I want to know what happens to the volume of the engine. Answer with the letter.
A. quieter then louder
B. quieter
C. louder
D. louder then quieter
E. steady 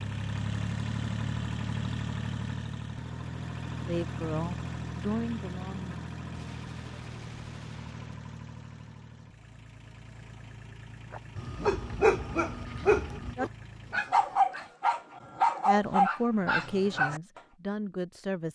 B.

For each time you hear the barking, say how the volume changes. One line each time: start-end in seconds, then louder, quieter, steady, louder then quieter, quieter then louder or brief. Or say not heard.
11.1-17.4 steady.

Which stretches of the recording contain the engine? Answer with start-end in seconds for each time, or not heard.
0.0-14.4.